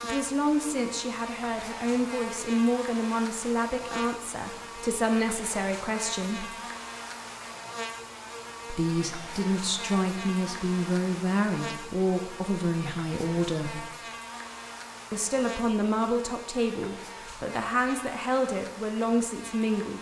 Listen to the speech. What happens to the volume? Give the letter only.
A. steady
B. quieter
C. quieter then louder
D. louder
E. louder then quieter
A.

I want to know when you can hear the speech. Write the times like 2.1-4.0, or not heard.
0.0-6.5, 8.7-13.8, 15.1-19.9.